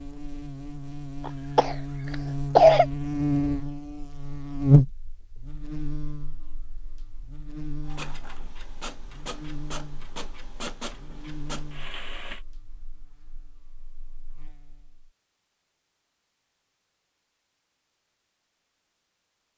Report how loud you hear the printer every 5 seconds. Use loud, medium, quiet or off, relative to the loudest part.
off, loud, loud, off.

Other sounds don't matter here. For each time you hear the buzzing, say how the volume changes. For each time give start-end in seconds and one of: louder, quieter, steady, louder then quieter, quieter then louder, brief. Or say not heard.
0.0-15.1 louder then quieter.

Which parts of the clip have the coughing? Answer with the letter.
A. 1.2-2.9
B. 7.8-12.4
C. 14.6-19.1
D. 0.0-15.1
A.